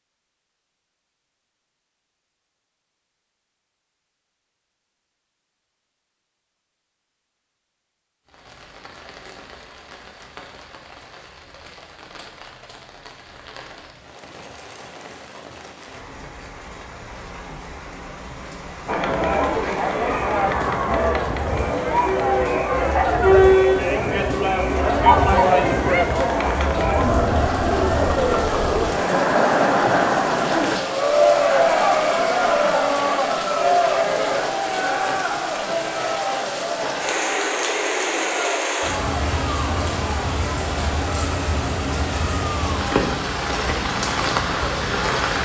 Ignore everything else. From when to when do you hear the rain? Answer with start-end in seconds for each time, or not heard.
8.2-45.4.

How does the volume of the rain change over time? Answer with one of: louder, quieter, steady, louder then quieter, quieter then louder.
louder.